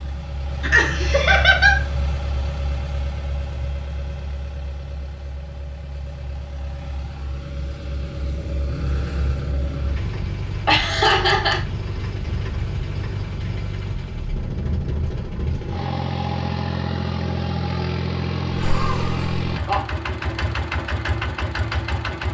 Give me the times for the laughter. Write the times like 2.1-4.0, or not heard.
0.6-1.8, 10.7-11.6, 18.5-19.8.